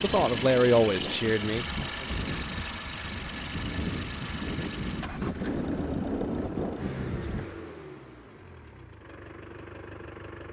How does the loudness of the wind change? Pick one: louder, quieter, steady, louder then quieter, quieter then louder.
louder.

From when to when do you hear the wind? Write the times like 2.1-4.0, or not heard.
0.0-7.6.